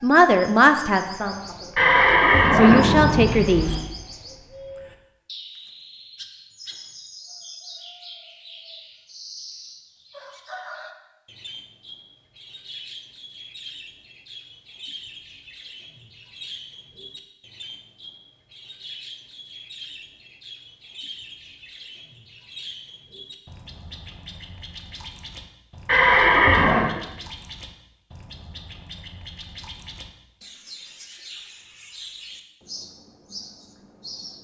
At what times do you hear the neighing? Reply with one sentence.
The neighing can be heard from 1.8 to 3.8 s and from 25.9 to 26.9 s.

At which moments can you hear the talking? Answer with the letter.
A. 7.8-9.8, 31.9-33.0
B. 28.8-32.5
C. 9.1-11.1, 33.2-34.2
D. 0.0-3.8
D.